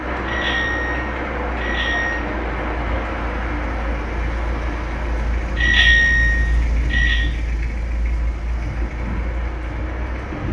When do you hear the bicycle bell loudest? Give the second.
6 s.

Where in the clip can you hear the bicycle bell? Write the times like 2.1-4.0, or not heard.
0.2-2.1, 5.5-7.2.